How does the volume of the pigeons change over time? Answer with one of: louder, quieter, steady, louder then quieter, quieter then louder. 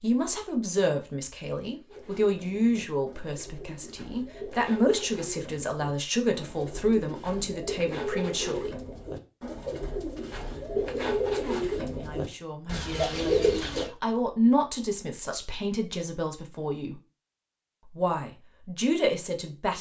louder.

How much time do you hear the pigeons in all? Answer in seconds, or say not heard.
12 s.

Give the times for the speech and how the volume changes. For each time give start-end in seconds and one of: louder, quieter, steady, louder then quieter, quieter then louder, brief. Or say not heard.
0.0-8.8 steady
11.2-16.9 louder then quieter
17.9-19.7 brief.